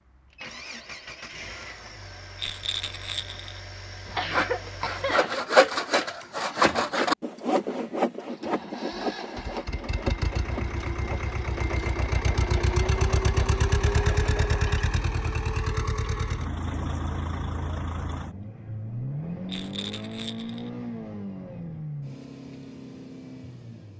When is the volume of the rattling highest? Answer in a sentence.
The loudest moment of the rattling is at 3 seconds.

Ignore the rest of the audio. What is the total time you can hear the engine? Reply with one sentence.
The engine can be heard for 24 seconds in total.